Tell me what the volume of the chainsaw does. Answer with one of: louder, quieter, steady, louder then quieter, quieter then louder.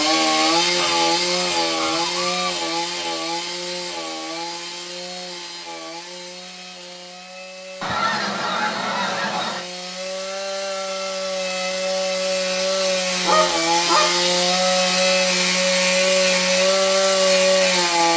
quieter then louder.